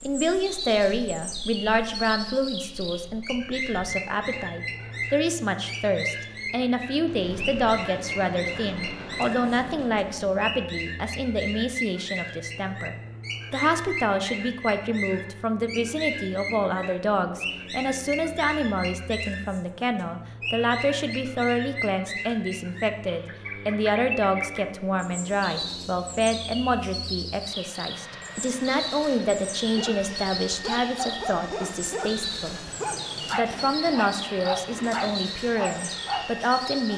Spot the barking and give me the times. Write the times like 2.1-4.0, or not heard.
29.6-36.9.